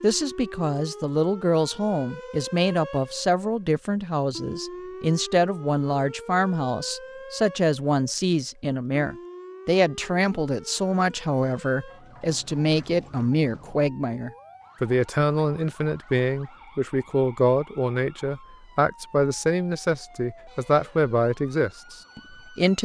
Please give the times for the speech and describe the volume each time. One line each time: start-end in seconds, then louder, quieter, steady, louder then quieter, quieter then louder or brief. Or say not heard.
0.0-22.8 steady.